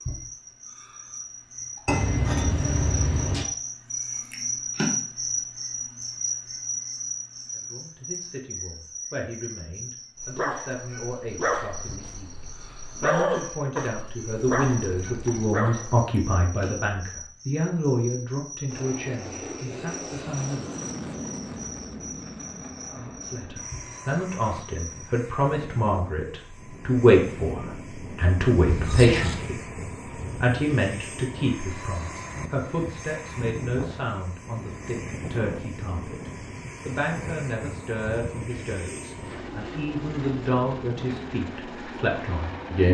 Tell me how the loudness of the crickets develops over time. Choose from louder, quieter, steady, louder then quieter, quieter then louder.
quieter.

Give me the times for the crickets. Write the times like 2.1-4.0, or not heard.
0.0-25.1.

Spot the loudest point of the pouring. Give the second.
2 s.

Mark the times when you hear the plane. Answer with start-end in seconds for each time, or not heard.
18.7-42.9.